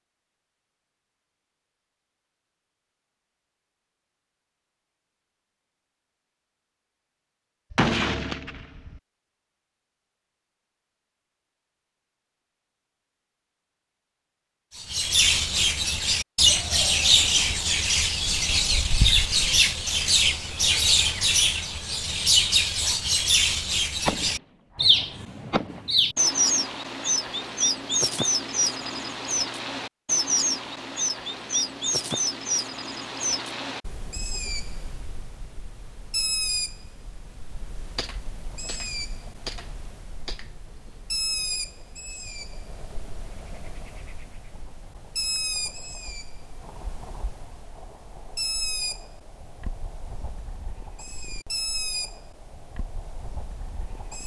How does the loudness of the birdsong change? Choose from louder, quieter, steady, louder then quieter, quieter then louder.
quieter.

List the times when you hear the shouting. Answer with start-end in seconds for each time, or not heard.
not heard.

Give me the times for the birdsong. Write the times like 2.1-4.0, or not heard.
14.8-54.2.